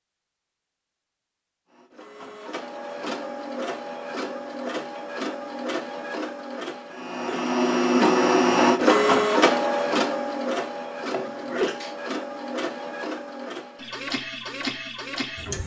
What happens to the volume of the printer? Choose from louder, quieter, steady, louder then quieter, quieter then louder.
louder then quieter.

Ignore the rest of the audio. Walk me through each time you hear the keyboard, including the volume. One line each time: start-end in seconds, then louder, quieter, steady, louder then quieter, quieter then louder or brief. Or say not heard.
not heard.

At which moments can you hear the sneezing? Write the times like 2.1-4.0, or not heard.
11.1-11.9.